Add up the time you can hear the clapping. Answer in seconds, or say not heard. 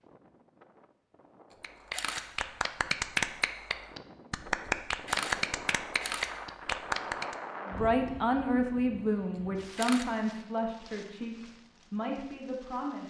6 s.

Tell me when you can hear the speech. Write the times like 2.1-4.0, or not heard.
7.7-13.0.